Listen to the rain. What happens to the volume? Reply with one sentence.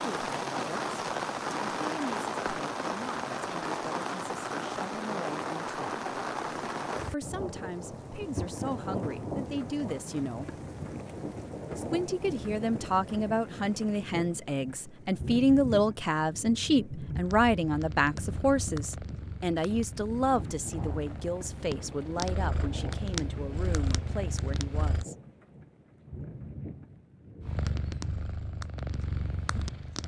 The loudness of the rain goes down.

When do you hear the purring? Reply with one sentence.
The purring can be heard from 17.2 to 25.1 s and from 27.4 to 30.0 s.